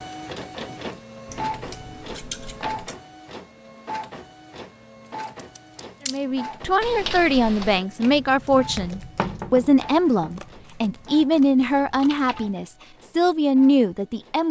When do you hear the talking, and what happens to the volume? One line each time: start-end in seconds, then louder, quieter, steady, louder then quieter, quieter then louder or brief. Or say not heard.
6.0-14.4 steady.